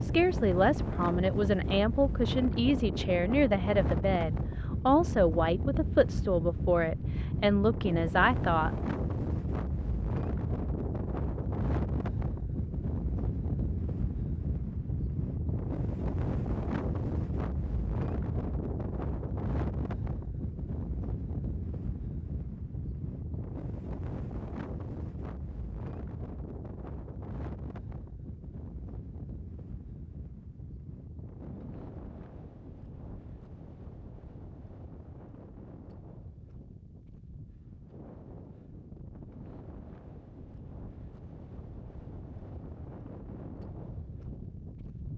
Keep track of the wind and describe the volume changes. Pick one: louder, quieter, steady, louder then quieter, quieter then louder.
quieter.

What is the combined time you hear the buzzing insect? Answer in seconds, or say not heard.
not heard.